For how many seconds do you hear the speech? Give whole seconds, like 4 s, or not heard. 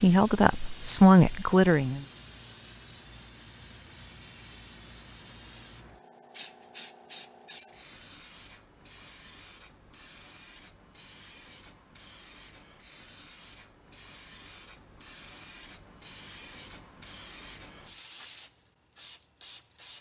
2 s.